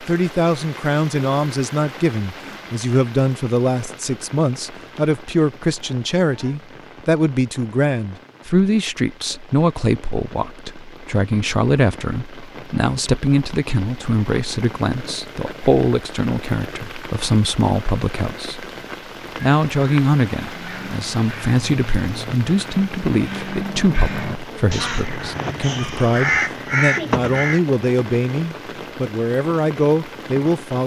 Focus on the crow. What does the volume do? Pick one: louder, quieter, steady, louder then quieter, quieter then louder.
louder.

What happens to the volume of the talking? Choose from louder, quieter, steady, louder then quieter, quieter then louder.
steady.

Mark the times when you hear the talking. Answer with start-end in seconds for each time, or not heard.
0.0-18.7, 19.4-30.8.